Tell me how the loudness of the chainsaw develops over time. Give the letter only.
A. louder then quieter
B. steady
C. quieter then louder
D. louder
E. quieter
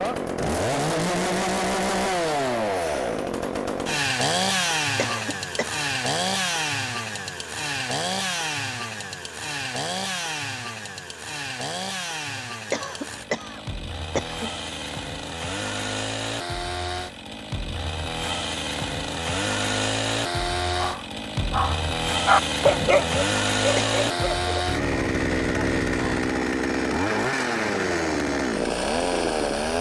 C.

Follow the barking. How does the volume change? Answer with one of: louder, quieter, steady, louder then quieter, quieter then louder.
louder then quieter.